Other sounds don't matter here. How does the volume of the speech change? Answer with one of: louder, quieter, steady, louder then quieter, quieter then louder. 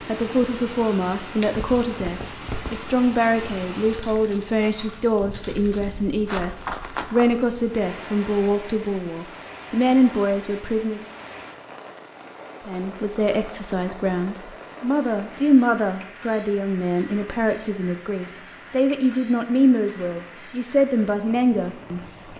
steady.